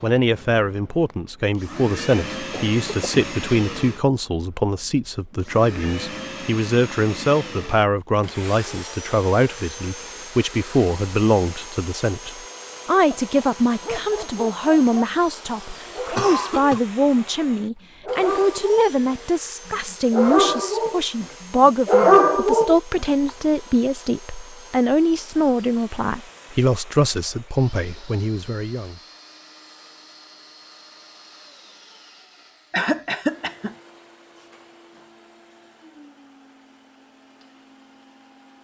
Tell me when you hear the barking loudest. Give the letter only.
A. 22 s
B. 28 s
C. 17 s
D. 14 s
A.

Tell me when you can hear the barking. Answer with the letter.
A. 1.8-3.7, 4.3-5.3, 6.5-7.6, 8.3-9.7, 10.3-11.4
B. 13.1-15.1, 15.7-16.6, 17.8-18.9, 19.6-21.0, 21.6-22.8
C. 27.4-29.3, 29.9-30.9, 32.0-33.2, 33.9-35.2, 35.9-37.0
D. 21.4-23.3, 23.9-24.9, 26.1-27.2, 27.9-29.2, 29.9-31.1
B.